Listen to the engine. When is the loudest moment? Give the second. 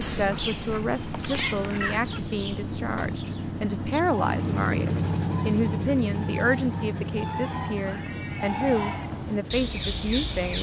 5 s.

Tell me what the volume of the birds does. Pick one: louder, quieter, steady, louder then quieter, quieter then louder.
quieter then louder.